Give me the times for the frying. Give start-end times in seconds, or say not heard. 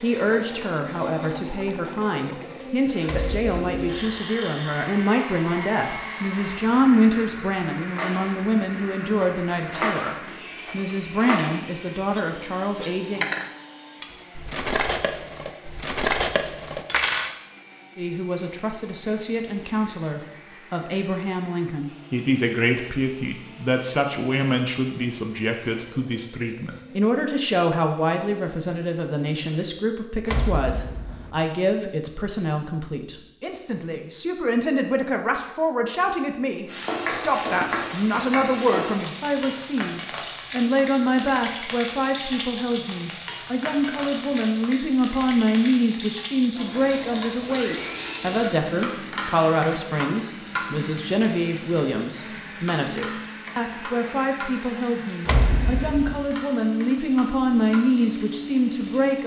36.6-59.2.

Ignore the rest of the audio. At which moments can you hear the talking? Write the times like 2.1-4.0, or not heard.
0.0-13.2, 17.9-59.2.